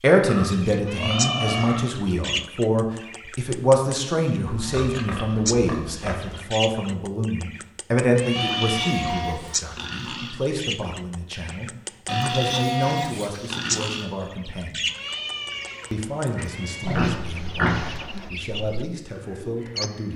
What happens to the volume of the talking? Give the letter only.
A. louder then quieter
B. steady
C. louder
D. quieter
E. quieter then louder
D.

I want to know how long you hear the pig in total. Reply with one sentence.
You can hear the pig for 10 seconds altogether.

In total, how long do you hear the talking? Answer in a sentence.
The talking can be heard for 19 seconds in total.